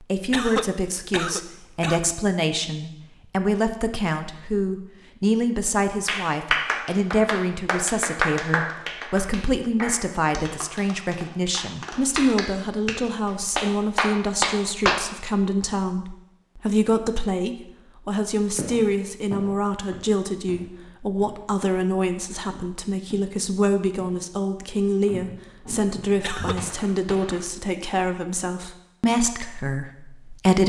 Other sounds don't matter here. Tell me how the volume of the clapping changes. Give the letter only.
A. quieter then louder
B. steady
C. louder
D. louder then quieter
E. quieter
A.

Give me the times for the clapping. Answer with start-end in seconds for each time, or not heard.
6.0-15.1.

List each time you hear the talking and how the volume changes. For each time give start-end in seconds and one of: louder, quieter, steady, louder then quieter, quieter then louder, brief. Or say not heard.
0.0-30.6 steady.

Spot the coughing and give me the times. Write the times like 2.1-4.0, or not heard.
0.1-2.1, 26.1-26.6.